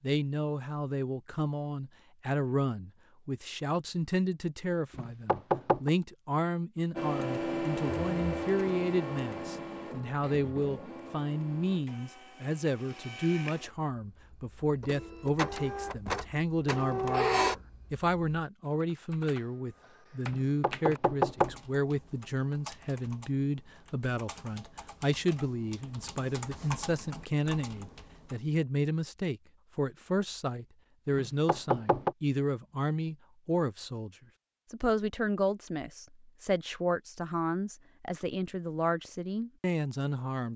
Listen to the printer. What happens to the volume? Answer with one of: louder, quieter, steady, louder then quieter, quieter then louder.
quieter then louder.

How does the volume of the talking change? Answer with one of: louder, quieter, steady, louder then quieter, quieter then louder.
steady.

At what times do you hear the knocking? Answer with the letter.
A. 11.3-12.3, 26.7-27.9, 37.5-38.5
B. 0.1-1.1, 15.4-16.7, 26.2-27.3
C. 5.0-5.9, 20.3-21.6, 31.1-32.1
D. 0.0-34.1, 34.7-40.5
C.